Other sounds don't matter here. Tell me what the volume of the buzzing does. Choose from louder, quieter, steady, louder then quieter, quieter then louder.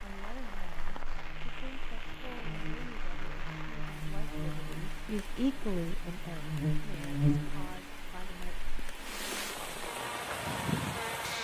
louder then quieter.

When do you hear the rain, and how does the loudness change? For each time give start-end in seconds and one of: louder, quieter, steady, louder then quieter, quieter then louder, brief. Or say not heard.
0.0-11.3 louder.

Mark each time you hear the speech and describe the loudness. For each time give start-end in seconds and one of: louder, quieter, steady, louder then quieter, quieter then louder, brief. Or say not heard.
0.0-8.6 louder then quieter.